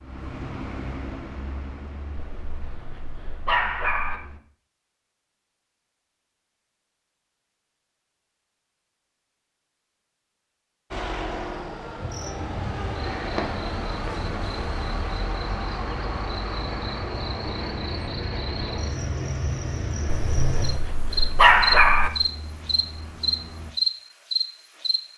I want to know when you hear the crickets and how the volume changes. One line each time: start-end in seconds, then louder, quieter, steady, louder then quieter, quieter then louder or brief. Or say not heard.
12.0-25.0 louder.